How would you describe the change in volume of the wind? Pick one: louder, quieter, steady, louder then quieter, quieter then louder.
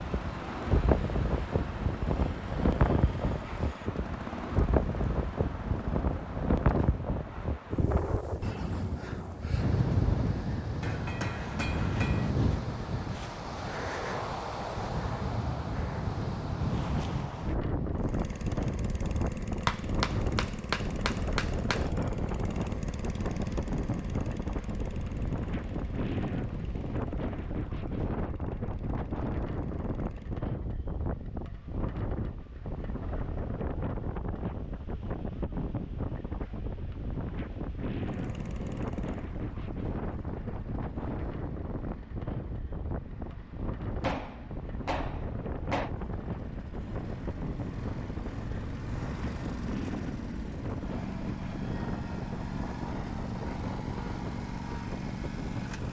quieter.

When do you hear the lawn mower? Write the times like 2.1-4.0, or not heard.
0.0-7.1, 17.9-30.4, 38.0-55.8.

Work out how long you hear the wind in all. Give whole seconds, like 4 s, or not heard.
56 s.